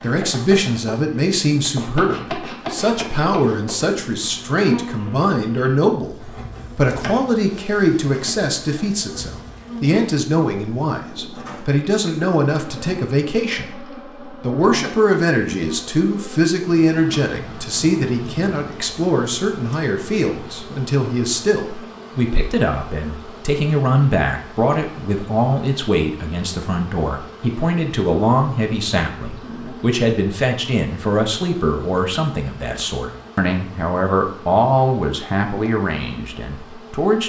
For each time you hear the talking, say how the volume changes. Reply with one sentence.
You can hear the talking from 0.0 to 13.8 s, at a steady volume; and from 14.4 to 37.2 s, at a steady volume.